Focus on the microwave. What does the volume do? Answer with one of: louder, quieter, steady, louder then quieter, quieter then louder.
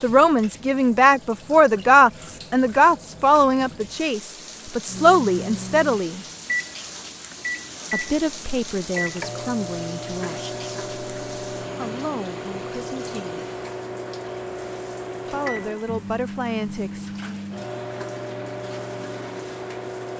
steady.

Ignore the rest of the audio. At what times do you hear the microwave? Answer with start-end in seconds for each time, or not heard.
4.8-20.1.